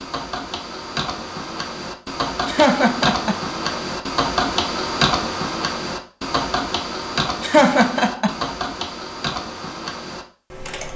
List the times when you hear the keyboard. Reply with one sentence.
You can hear the keyboard from 0.0 to 10.9 s.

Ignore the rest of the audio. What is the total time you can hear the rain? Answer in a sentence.
The rain can't be heard in this clip.